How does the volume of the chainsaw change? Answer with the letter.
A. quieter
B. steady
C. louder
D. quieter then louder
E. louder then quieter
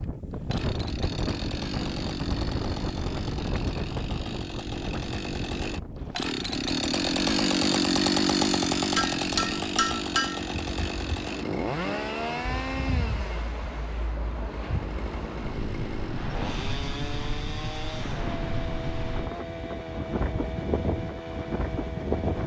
E.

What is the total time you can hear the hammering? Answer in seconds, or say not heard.
2 s.